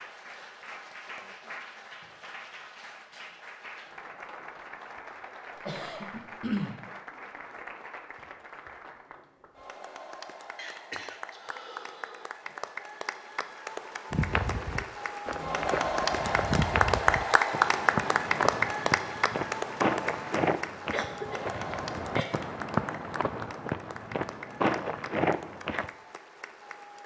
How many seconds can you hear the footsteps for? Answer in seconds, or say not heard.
12 s.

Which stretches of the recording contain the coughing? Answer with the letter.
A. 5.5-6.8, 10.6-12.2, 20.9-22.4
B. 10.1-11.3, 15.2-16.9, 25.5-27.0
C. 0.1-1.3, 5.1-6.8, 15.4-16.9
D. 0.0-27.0
A.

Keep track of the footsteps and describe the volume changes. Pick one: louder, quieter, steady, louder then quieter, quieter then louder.
steady.